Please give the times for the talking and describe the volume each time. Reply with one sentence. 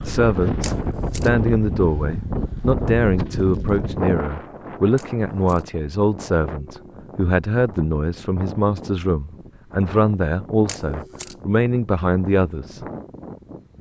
You can hear the talking from 0.0 to 12.8 s, at a steady volume.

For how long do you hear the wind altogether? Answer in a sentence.
The wind can be heard for 14 seconds in total.